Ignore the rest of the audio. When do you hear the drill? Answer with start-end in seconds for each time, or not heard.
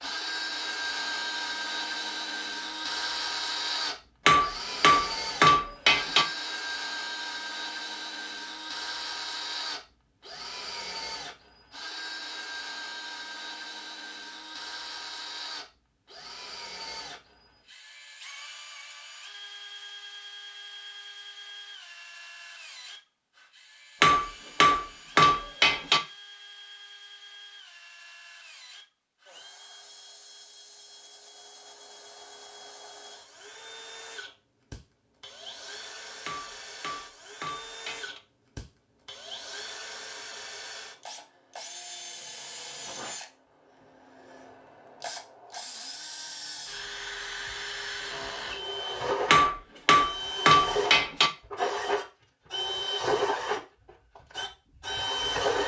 0.0-55.6.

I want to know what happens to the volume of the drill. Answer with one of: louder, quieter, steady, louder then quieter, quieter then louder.
quieter then louder.